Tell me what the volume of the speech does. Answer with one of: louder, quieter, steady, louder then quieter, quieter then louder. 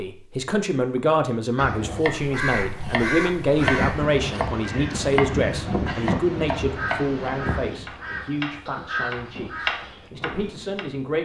quieter.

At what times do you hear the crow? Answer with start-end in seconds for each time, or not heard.
1.6-10.1.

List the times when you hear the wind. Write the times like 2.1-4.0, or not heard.
3.5-10.8.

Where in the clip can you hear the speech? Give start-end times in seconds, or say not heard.
0.0-11.1.